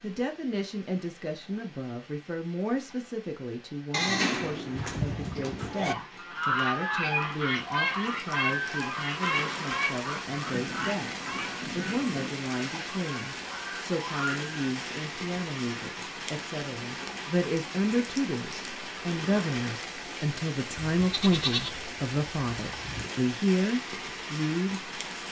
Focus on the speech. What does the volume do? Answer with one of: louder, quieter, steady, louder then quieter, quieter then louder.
louder.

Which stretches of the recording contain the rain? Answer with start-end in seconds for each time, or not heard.
0.0-25.2.